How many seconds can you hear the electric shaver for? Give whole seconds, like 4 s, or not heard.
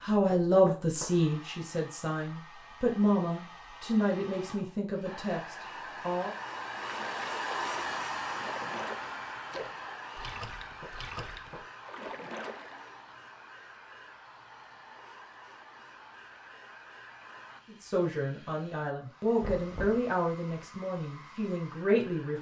not heard.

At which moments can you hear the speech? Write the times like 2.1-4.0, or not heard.
0.0-6.3, 17.7-22.3.